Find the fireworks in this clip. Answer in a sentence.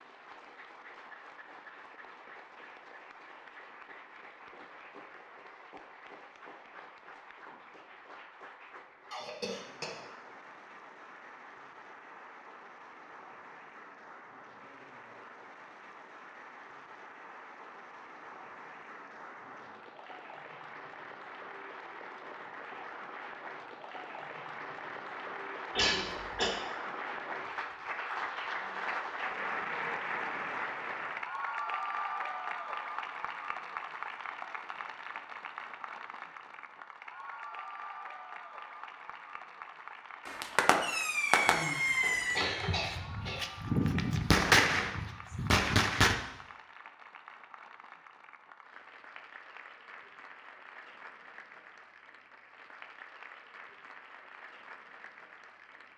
You can hear the fireworks from 40.2 to 46.1 s.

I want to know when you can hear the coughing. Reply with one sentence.
The coughing can be heard from 9.1 to 10.0 s, from 25.8 to 26.5 s and from 41.5 to 43.5 s.